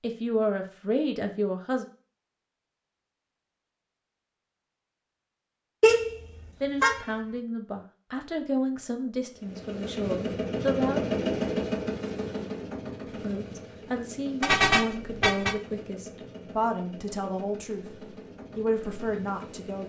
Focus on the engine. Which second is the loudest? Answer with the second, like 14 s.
11 s.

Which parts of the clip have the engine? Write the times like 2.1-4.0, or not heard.
9.3-19.8.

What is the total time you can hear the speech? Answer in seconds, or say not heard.
13 s.